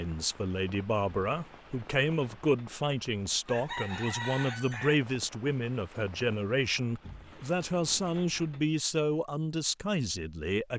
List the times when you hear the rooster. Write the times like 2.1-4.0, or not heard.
3.5-5.0.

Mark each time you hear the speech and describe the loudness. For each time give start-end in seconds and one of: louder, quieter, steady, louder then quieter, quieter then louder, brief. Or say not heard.
0.0-10.7 steady.